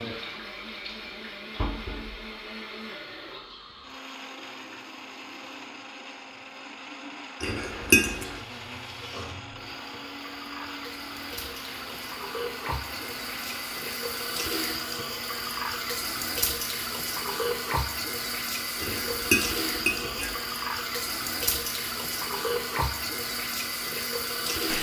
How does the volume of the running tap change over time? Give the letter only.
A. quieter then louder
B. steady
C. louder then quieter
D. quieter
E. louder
E.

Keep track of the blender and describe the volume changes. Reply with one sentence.
The volume of the blender stays about the same.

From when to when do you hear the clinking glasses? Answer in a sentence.
You can hear the clinking glasses from 7.4 to 8.3 s and from 18.8 to 20.4 s.